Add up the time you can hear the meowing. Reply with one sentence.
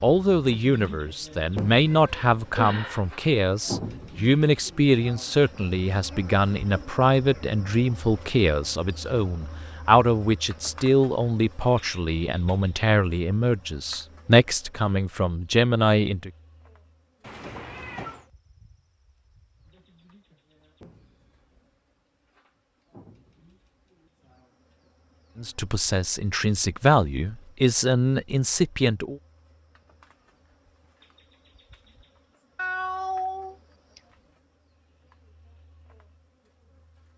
You can hear the meowing for 4 seconds altogether.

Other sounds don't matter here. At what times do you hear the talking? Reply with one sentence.
The talking can be heard from 0.0 to 16.3 s and from 25.4 to 29.2 s.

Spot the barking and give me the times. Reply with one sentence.
You can't hear the barking here.